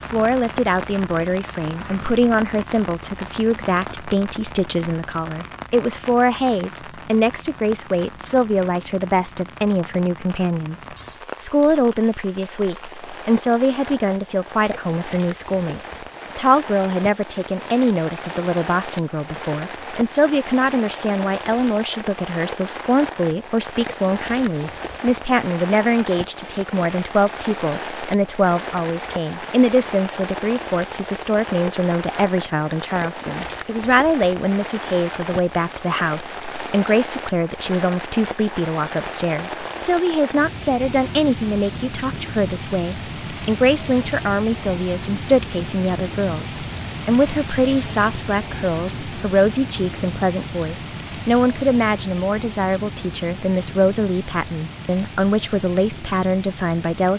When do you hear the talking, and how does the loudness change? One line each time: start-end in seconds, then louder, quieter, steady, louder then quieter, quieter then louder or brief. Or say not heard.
0.1-57.1 steady.